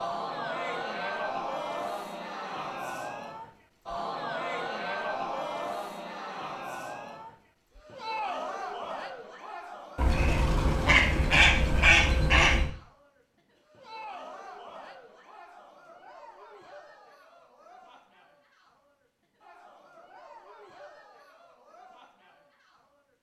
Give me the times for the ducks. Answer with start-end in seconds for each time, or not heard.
9.9-12.7.